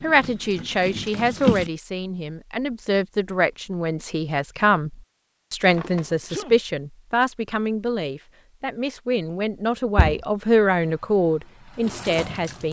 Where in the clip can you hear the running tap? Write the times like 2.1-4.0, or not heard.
0.0-1.7, 10.8-12.6.